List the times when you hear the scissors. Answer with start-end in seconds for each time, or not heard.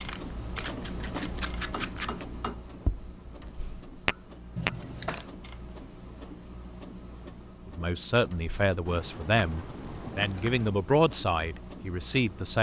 0.1-2.2, 4.5-5.2, 8.8-10.8.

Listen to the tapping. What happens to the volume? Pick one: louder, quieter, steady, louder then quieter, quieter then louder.
louder.